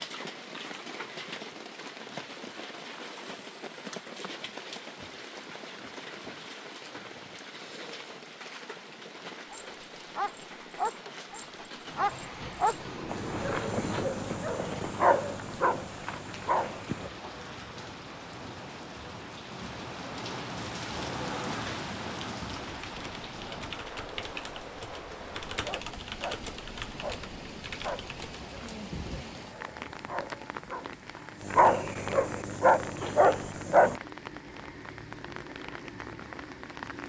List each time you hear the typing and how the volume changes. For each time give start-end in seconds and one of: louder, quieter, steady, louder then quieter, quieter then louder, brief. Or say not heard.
22.8-28.4 steady.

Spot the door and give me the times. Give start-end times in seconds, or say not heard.
12.4-13.7.